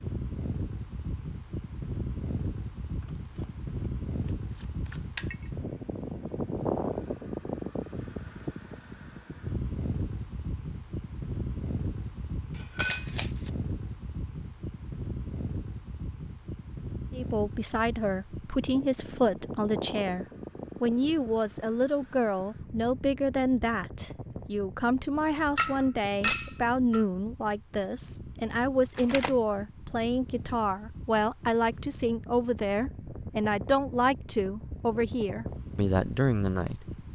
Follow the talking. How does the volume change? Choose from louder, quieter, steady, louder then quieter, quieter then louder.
steady.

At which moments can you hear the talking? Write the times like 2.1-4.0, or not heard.
17.1-37.1.